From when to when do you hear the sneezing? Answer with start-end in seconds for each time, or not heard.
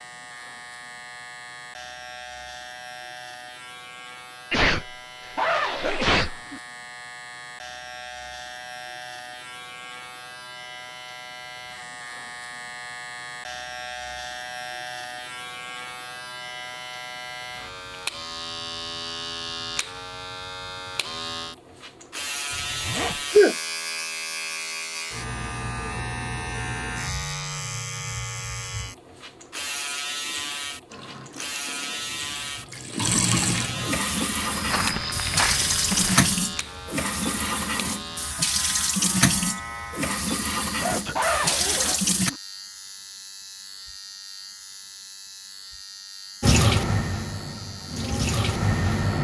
4.5-6.3, 22.9-23.6, 40.8-41.2.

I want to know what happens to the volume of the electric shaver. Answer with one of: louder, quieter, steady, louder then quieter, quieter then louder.
louder then quieter.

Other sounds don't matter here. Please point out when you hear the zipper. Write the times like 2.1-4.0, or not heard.
5.3-6.6, 22.5-23.2, 41.1-42.4.